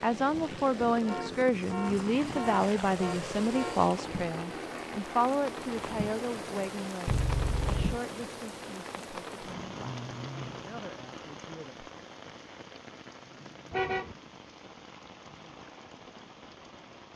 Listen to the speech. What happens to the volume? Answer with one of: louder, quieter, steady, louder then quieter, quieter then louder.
quieter.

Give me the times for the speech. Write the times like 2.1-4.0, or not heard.
0.0-11.9.